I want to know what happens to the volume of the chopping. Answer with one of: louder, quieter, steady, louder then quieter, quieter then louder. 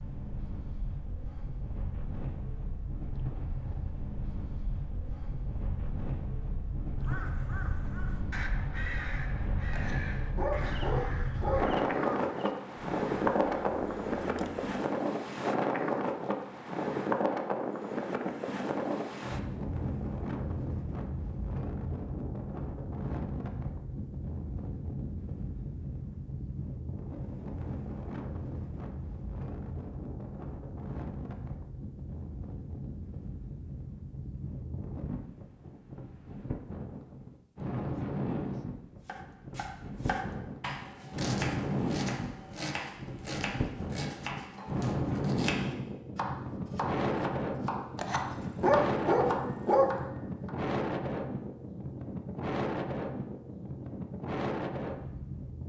steady.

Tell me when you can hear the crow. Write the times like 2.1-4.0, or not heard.
7.0-14.7.